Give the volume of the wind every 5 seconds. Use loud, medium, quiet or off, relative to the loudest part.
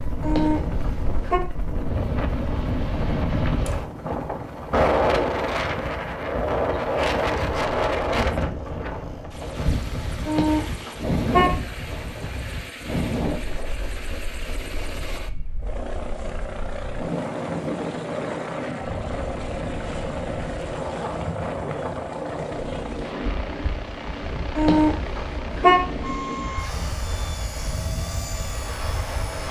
loud, loud, medium, medium, medium, medium.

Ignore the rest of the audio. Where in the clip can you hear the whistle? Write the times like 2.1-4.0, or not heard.
not heard.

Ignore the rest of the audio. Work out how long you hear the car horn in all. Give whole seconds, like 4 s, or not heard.
4 s.